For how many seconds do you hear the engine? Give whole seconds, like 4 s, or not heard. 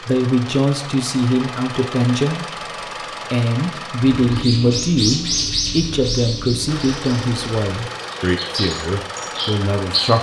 8 s.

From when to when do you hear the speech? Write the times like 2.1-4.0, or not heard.
0.0-2.6, 3.3-10.1.